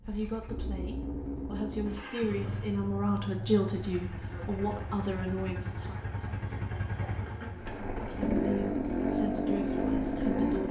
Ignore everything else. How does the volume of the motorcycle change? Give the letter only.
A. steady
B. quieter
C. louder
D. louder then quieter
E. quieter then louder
C.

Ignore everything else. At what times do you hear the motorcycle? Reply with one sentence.
The motorcycle can be heard from 0.0 to 10.6 s.